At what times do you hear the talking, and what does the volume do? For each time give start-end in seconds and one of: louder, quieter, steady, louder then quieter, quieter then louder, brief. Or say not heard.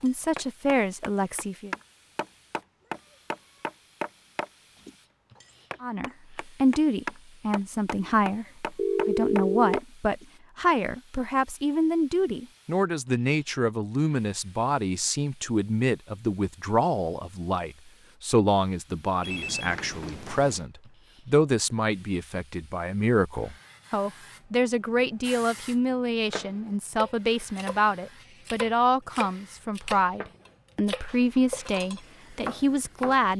0.0-1.7 brief
5.8-33.3 steady.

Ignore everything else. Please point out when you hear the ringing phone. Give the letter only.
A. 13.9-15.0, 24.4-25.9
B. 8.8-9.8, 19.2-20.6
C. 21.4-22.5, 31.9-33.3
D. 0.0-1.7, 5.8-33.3
B.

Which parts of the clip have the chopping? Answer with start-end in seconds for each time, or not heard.
0.0-10.2, 26.2-33.2.